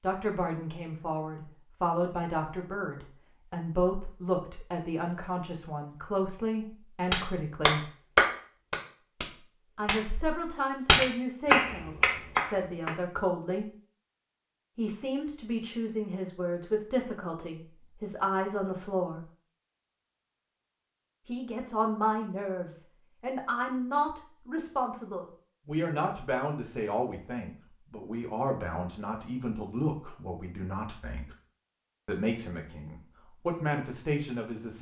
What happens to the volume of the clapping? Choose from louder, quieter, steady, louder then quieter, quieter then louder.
quieter then louder.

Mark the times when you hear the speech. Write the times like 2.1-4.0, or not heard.
0.0-7.9, 9.8-13.7, 14.8-19.2, 21.2-31.4, 32.0-34.7.